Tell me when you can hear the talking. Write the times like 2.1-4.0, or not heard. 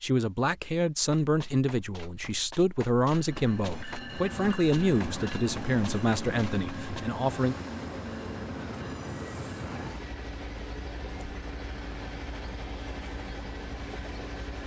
0.0-7.5.